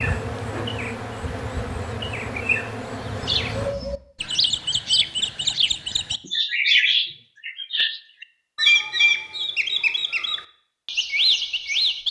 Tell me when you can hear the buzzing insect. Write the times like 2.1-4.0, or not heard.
0.0-3.8.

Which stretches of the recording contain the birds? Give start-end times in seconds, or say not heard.
3.1-12.0.